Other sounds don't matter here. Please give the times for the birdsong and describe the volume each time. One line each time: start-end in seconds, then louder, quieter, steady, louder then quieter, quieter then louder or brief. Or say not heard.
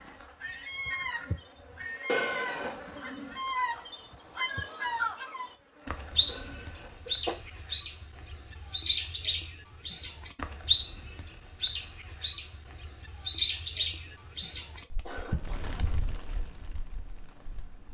0.0-17.8 louder then quieter.